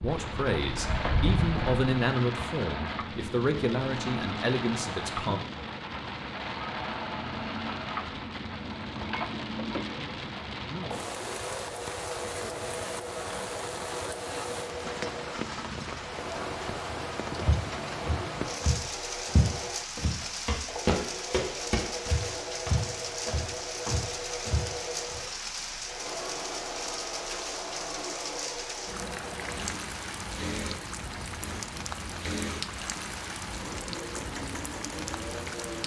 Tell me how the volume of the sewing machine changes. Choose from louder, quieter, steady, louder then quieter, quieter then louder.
steady.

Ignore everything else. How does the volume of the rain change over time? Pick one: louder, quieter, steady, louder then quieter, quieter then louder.
steady.